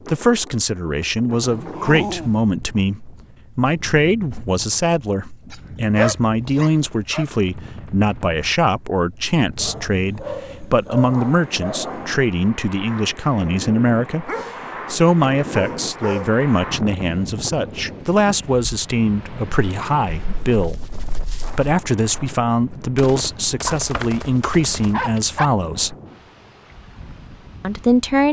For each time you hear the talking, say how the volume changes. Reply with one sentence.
You can hear the talking from 0.1 to 14.3 s, at a steady volume; from 14.9 to 25.9 s, at a steady volume; and briefly from 27.6 to 28.2 s.